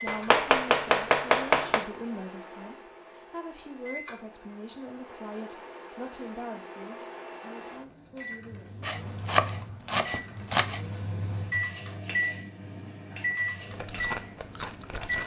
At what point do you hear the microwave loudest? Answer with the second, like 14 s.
12 s.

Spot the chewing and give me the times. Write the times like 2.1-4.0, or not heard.
13.6-15.2.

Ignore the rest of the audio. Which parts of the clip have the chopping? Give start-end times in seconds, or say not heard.
0.1-1.9, 8.8-10.8.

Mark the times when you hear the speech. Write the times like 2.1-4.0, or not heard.
0.0-8.8.